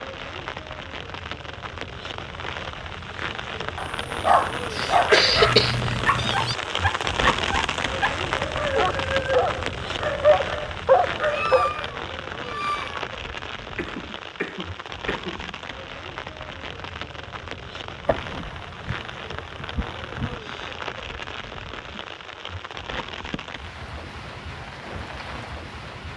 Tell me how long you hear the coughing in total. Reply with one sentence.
The coughing can be heard for 5 seconds in total.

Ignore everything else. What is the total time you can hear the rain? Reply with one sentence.
You can hear the rain for 26 seconds altogether.